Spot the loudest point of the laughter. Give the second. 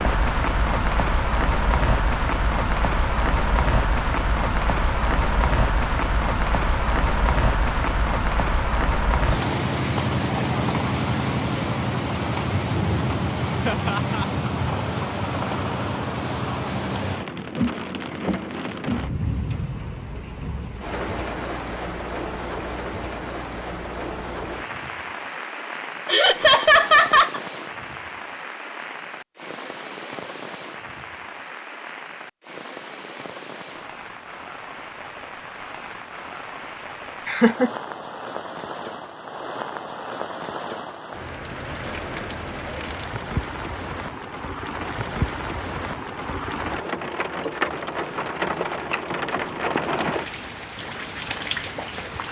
27 s.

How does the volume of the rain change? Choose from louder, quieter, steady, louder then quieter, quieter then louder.
quieter then louder.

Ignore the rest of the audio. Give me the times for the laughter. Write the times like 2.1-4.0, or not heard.
13.7-14.2, 26.1-27.4, 36.8-37.7.